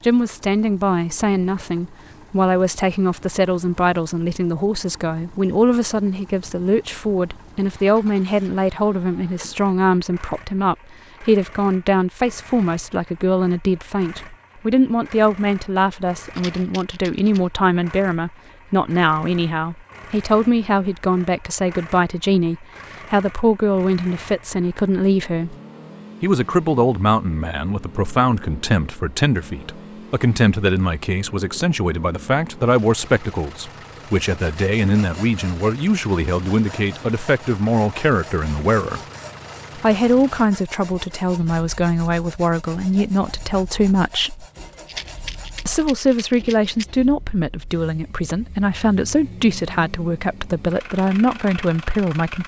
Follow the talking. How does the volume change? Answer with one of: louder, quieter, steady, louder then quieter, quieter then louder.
steady.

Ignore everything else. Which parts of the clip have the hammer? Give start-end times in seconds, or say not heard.
not heard.